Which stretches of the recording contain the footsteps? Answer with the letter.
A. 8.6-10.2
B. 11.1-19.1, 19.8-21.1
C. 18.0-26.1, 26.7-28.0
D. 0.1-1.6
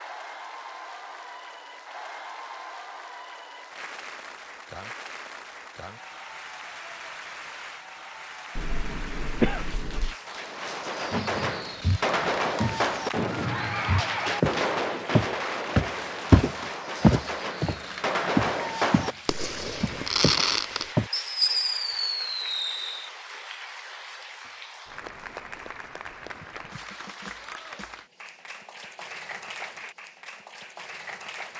B.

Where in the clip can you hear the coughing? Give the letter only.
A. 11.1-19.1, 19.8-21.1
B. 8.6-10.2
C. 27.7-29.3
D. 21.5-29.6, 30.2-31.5
B.